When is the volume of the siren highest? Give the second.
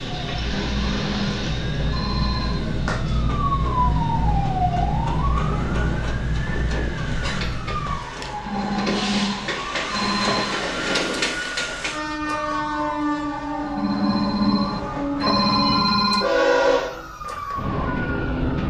4 s.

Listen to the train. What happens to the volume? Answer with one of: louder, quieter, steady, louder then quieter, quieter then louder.
louder.